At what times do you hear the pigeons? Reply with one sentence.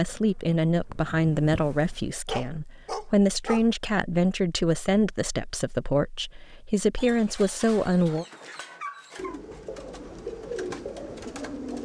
The pigeons can be heard from 9.2 to 11.8 s.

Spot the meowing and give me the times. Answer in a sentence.
The meowing can't be heard in this clip.